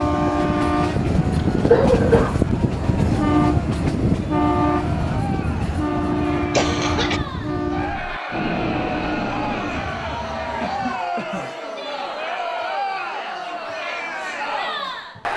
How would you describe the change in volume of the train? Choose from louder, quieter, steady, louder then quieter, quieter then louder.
quieter.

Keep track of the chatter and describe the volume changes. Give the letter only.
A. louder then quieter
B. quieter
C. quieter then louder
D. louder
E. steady
D.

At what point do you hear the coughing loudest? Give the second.
2 s.